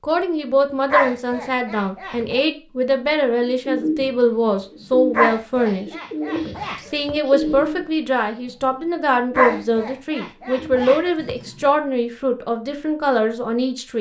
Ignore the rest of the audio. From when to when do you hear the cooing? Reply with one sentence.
You can hear the cooing from 3.4 to 4.1 s, from 4.7 to 9.8 s and from 10.4 to 11.8 s.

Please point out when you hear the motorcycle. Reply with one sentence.
The motorcycle can't be heard in this clip.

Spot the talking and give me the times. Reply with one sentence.
The talking can be heard from 0.0 to 5.9 s and from 6.9 to 13.9 s.